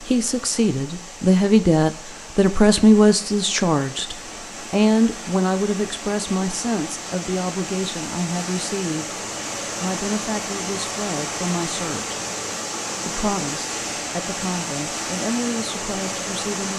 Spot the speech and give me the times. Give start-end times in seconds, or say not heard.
0.0-9.2, 9.8-12.2, 13.1-16.7.